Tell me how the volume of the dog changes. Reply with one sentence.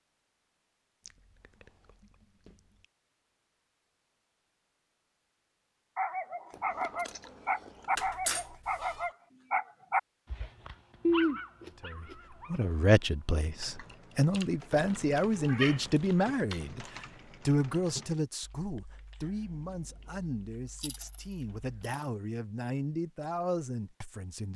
The volume of the dog goes down.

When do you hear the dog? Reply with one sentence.
The dog can be heard from 6.0 to 13.9 s.